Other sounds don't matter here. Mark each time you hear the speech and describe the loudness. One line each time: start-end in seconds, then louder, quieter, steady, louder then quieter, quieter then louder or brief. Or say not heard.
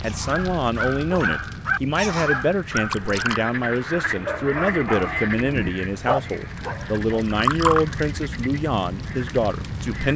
0.0-10.1 steady.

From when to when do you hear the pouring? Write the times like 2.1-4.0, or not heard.
2.8-3.4, 7.0-7.9.